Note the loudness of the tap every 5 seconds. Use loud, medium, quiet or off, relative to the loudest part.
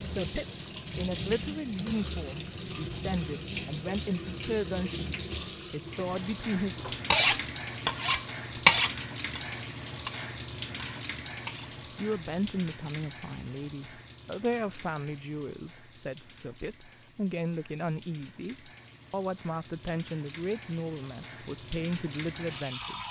loud, loud, medium, quiet, medium.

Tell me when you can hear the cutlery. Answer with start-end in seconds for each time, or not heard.
7.1-12.2.